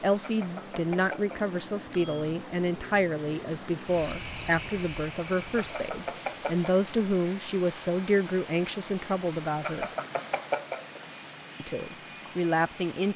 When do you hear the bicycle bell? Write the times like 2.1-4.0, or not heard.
0.2-2.3, 5.5-6.7, 9.6-11.0.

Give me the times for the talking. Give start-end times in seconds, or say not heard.
0.0-9.9, 11.6-13.1.